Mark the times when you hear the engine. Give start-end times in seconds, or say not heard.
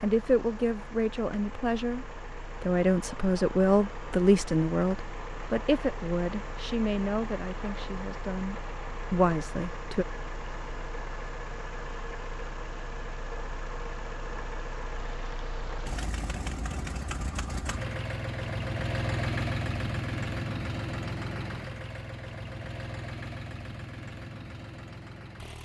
0.0-25.5.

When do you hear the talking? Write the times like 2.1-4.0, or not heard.
0.0-10.1.